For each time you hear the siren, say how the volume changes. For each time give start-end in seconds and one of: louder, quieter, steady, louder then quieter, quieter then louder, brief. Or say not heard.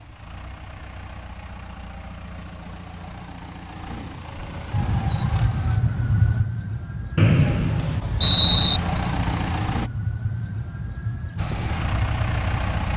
4.7-12.9 quieter.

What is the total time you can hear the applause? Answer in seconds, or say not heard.
not heard.